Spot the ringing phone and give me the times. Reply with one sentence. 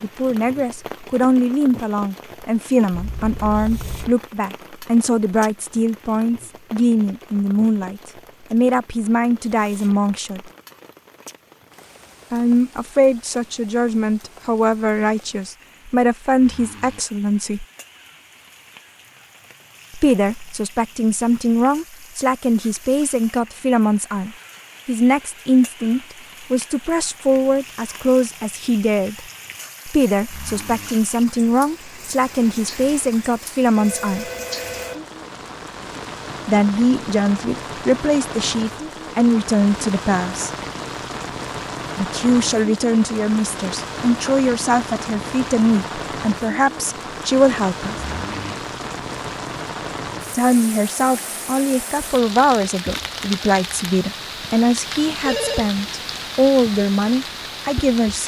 You can hear the ringing phone from 2.9 to 4.2 s, from 33.8 to 35.0 s and from 54.9 to 55.7 s.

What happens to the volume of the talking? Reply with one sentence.
The loudness of the talking stays about the same.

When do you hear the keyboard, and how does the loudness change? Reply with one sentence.
The keyboard can't be heard in this clip.